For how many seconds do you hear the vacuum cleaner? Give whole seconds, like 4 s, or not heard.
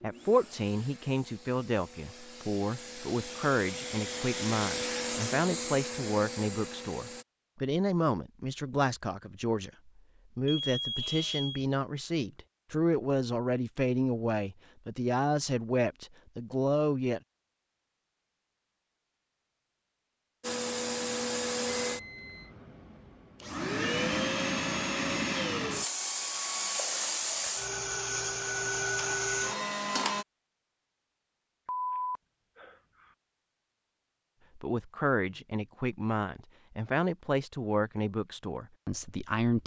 17 s.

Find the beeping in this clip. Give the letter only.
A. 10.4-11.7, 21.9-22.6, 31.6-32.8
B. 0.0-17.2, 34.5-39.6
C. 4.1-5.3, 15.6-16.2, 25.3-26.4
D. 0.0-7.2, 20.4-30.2
A.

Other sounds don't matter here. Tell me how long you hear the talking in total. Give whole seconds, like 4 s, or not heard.
22 s.